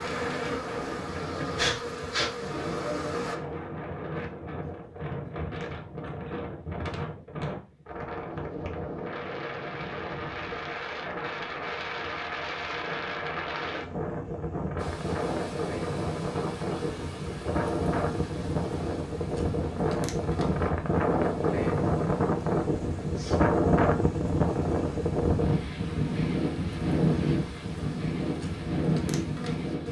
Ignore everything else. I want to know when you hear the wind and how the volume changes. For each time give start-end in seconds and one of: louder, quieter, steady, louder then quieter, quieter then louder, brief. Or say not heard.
0.0-29.8 louder.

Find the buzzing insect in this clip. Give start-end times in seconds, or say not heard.
0.0-3.4, 14.8-29.8.